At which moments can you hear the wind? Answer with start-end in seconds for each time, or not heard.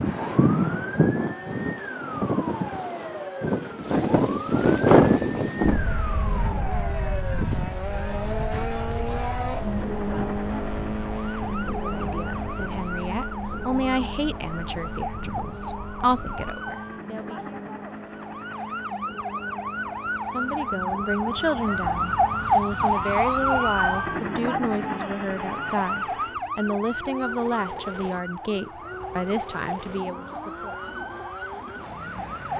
0.0-16.4.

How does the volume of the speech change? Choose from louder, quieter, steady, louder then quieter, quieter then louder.
steady.